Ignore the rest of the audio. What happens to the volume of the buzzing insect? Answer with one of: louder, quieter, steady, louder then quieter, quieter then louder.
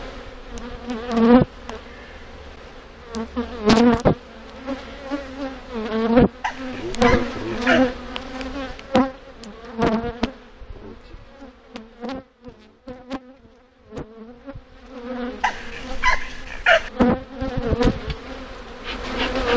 quieter then louder.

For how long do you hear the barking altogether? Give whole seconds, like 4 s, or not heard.
3 s.